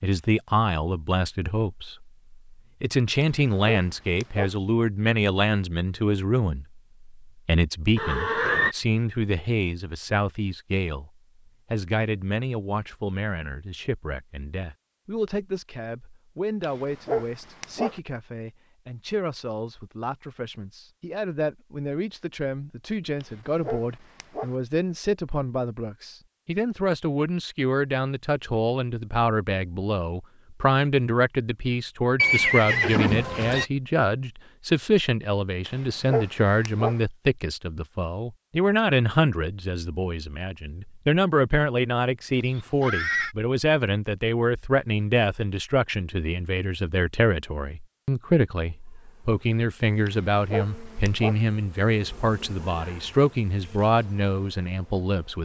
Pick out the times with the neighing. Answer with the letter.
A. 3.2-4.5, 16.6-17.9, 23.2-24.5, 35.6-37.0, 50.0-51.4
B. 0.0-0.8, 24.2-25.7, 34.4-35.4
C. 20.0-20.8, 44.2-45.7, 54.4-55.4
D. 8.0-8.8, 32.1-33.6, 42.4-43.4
D.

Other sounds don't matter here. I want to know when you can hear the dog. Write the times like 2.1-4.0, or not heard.
3.2-4.5, 16.6-17.9, 23.2-24.5, 35.6-37.0, 50.0-51.4.